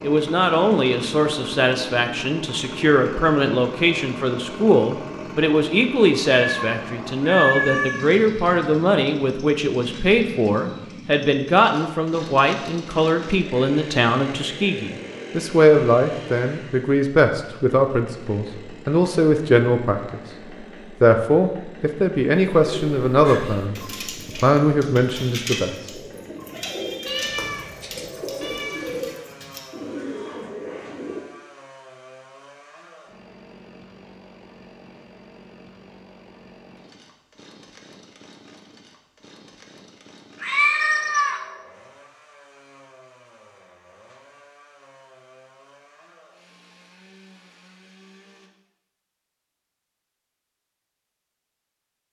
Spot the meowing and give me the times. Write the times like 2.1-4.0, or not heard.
6.4-8.1, 27.1-29.0, 40.4-41.4.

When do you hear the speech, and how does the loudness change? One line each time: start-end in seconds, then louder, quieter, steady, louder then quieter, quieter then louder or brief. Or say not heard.
0.0-20.2 steady
21.0-25.7 steady.